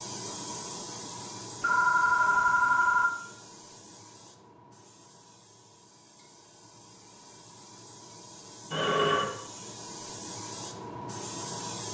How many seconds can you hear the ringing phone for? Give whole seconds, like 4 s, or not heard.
2 s.